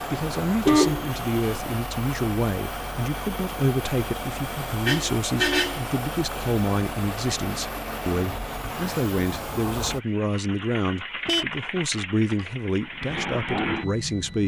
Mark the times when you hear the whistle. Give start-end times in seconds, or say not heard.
not heard.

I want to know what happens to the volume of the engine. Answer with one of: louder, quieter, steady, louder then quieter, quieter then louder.
steady.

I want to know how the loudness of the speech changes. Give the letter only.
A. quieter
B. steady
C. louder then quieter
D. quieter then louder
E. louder
B.